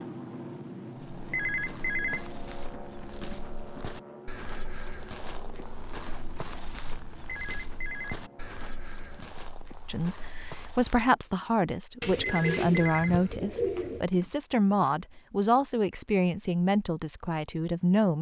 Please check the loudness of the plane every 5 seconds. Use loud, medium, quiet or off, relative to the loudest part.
loud, medium, off, off.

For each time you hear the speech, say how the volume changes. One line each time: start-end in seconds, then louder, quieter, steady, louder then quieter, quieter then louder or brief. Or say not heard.
9.8-18.1 steady.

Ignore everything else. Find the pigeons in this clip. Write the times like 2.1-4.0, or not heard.
12.0-14.1.